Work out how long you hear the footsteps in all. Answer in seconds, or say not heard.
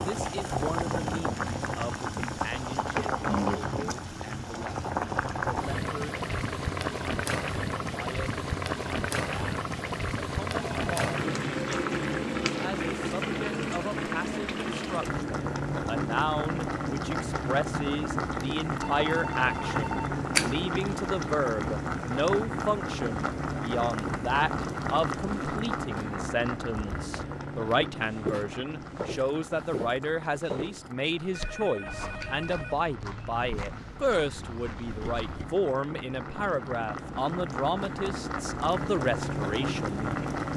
9 s.